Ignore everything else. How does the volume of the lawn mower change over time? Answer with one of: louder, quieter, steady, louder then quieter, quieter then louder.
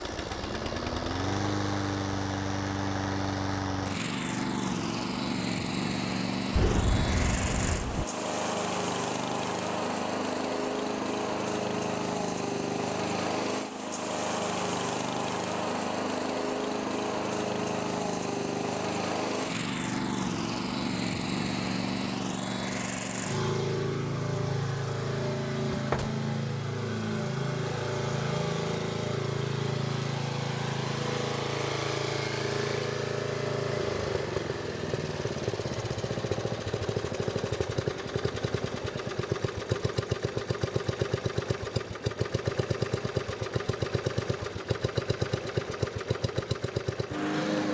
steady.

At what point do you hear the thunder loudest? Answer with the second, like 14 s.
7 s.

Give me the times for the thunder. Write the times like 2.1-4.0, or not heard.
6.5-8.1.